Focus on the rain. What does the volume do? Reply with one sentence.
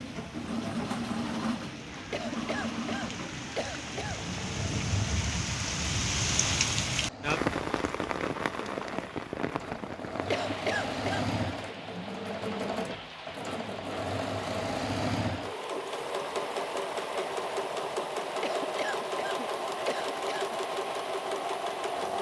The volume of the rain goes up, then down.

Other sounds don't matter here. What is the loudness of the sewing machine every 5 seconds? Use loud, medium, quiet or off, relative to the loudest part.
loud, medium, loud, loud, loud.